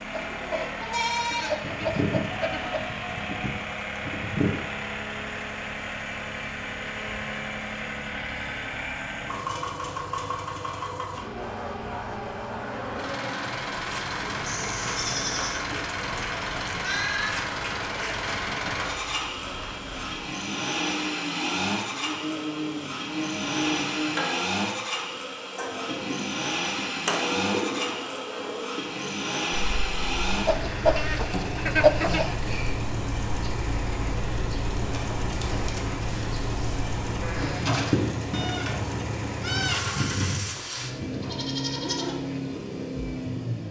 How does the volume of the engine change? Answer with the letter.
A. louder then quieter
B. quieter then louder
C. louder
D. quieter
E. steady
E.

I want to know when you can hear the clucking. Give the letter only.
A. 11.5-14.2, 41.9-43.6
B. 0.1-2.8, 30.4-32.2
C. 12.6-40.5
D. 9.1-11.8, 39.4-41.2
B.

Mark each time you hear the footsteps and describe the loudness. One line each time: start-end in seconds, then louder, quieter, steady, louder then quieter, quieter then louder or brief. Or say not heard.
not heard.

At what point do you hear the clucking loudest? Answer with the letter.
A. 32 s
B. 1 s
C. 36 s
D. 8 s
A.